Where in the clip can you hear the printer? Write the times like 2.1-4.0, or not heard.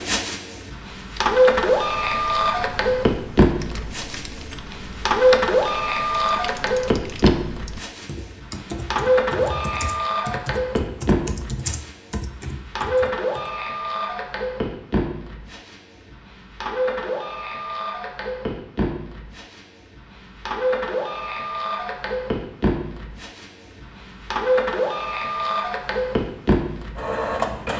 0.0-27.7.